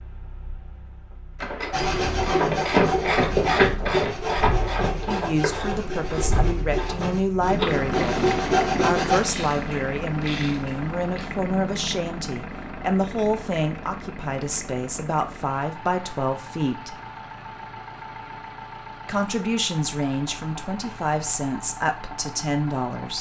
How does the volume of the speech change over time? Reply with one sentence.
The volume of the speech stays about the same.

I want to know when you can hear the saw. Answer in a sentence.
The saw can be heard from 1.7 to 9.2 s.